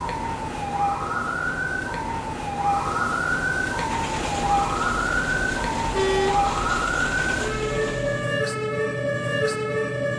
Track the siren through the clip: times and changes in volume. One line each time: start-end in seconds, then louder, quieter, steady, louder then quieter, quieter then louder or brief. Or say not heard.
0.0-10.1 steady.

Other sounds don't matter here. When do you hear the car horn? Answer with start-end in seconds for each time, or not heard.
5.9-6.5.